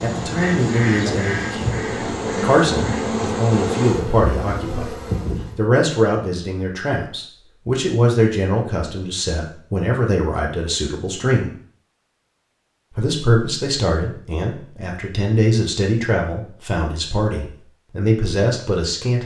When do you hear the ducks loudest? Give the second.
1 s.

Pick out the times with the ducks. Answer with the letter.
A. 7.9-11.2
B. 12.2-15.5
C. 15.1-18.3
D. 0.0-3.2
D.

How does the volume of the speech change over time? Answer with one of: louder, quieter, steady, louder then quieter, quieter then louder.
steady.